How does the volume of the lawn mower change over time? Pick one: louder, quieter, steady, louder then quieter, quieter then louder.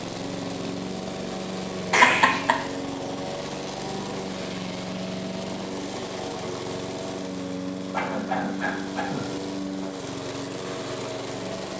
steady.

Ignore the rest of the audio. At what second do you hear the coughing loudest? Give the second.
2 s.